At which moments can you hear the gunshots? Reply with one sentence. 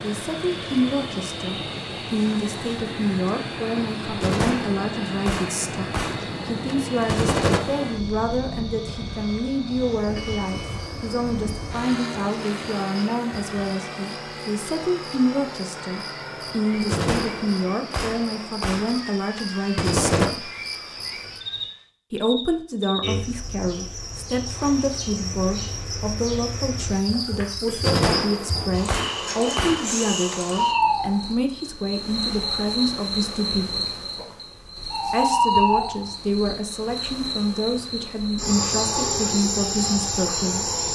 You can hear the gunshots from 4.0 to 7.6 s, from 16.7 to 20.3 s and from 27.6 to 30.4 s.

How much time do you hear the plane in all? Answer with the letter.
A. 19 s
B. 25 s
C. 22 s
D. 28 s
C.